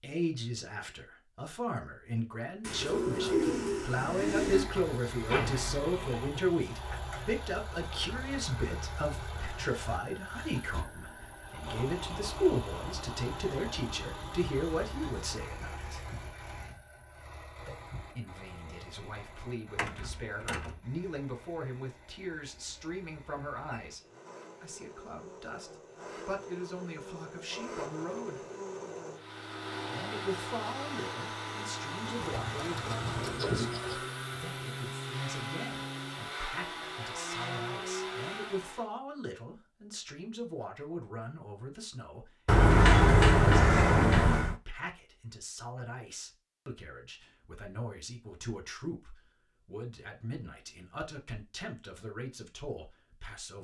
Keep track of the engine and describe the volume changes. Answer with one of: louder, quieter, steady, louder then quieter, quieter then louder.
quieter then louder.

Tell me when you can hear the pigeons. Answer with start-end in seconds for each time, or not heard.
2.6-4.7, 32.0-34.0.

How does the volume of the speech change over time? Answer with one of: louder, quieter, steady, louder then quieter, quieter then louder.
quieter.